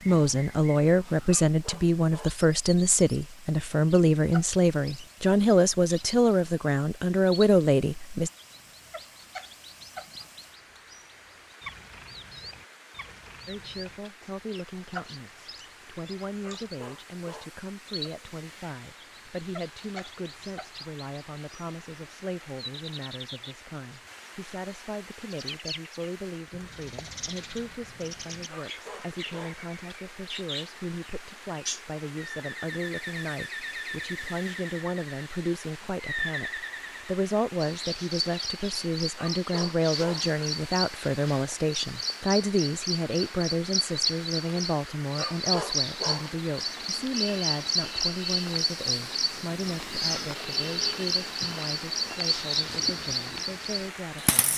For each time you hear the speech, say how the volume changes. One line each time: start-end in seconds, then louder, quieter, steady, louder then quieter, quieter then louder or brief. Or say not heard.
0.1-8.3 steady
13.4-54.5 louder then quieter.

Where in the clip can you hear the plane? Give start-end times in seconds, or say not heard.
not heard.